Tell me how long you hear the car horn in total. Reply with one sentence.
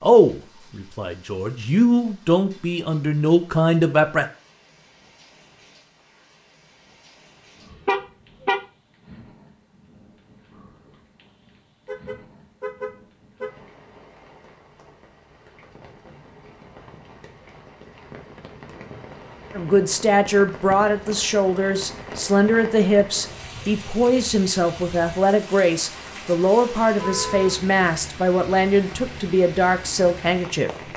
The car horn can be heard for 3 seconds in total.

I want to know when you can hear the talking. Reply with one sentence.
The talking can be heard from 0.0 to 4.2 s and from 19.6 to 30.7 s.